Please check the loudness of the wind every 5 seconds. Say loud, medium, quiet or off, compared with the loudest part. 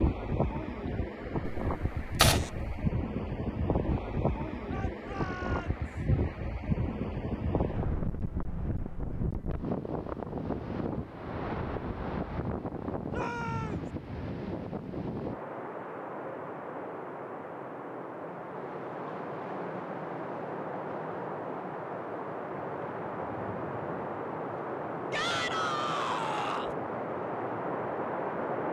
loud, loud, loud, medium, loud, loud.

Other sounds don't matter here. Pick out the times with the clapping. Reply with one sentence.
You can't hear the clapping here.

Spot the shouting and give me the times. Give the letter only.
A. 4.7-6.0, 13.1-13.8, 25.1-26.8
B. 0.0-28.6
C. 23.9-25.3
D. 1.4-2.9
A.